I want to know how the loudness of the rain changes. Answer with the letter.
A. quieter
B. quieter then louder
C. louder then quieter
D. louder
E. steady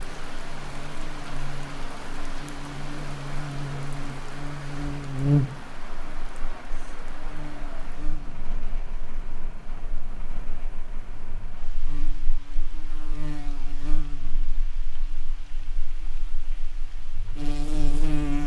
A.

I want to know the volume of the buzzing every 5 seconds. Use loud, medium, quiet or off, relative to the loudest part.
medium, loud, quiet, medium.